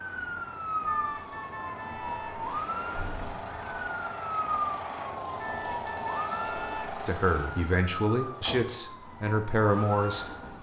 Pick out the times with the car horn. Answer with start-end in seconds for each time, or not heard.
0.8-2.5, 5.3-7.0.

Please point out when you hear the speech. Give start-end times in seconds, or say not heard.
7.0-10.5.